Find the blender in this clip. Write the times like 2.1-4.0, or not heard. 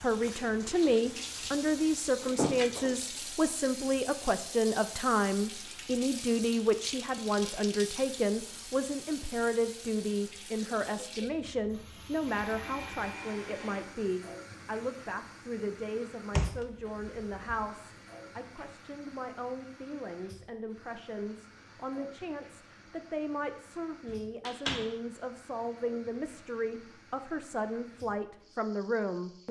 12.2-13.8.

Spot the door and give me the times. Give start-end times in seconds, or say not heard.
2.2-3.0, 16.3-17.7, 24.1-24.9.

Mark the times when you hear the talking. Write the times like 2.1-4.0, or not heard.
0.0-29.4.